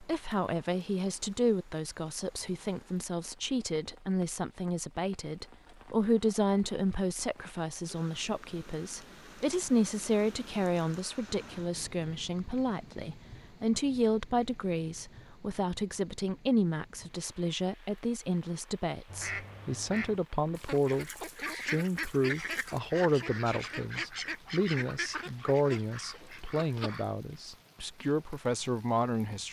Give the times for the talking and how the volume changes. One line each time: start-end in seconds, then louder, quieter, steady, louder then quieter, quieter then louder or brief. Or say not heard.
0.0-29.4 steady.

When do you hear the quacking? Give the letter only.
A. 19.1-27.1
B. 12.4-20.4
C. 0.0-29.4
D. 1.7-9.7
A.